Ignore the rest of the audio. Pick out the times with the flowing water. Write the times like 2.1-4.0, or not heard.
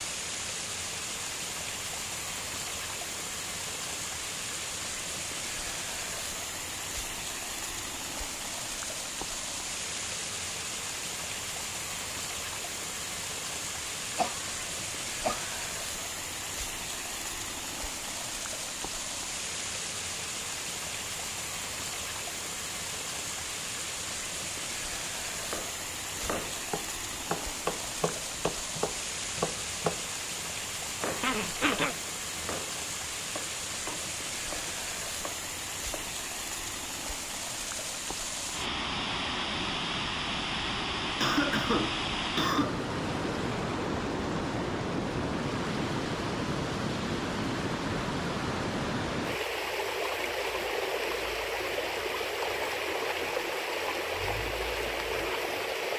0.0-55.9.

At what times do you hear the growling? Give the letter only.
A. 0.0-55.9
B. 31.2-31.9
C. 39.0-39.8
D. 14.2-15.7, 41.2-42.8
B.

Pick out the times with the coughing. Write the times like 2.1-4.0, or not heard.
14.2-15.7, 41.2-42.8.